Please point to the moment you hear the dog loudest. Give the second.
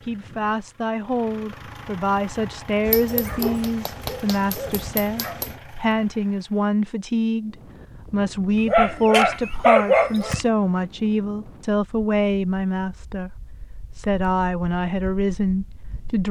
10 s.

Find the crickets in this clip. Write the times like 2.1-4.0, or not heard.
not heard.